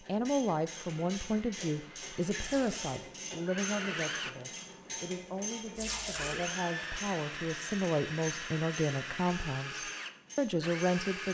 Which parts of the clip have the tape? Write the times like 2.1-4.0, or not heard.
2.4-2.9, 5.8-6.4.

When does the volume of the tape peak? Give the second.
6 s.